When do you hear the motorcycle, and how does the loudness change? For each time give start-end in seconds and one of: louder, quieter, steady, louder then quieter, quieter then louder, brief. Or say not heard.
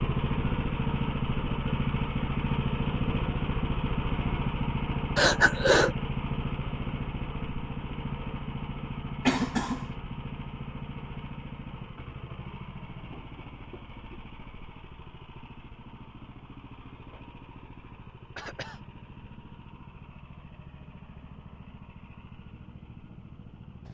0.0-23.9 quieter.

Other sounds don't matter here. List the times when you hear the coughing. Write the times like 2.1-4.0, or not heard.
5.2-6.0, 9.2-9.9, 18.4-18.8.